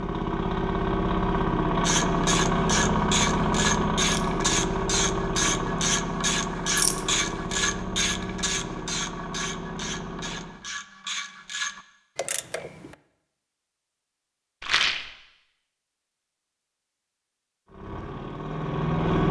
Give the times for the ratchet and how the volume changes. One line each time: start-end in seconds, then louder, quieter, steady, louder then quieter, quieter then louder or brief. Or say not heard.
1.8-12.9 quieter.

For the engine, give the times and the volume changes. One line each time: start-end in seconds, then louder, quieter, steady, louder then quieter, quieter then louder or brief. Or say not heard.
0.0-10.6 quieter
17.6-19.2 brief.